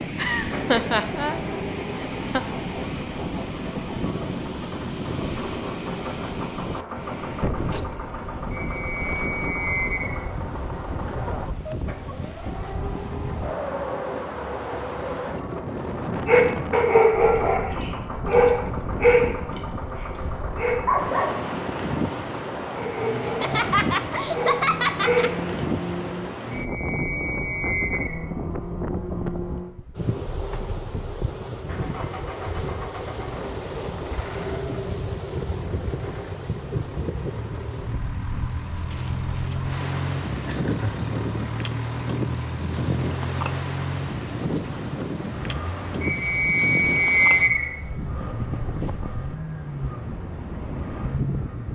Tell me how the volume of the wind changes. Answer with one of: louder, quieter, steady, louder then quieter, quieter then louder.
steady.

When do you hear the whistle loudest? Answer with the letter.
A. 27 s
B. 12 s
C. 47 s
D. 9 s
C.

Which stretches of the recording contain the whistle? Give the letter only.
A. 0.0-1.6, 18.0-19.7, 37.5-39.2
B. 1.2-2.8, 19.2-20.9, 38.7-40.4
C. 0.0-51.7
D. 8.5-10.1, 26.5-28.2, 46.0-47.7
D.